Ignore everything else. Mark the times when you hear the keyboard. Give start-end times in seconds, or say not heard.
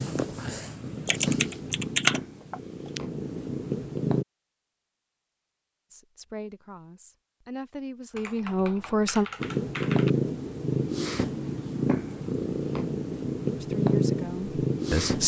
1.1-3.0, 8.1-10.1.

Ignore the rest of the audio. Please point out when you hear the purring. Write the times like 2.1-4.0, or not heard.
0.0-4.2, 9.4-15.2.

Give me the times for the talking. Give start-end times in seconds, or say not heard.
5.9-9.2, 13.6-15.2.